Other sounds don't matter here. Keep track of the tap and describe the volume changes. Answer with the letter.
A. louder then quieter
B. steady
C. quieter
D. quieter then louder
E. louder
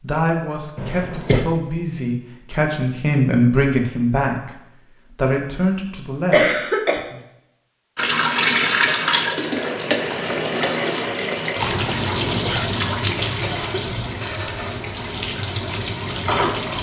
C.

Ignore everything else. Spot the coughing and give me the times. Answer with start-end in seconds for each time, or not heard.
0.8-1.4, 6.3-7.0, 12.4-14.1.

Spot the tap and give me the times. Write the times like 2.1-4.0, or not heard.
8.0-16.7.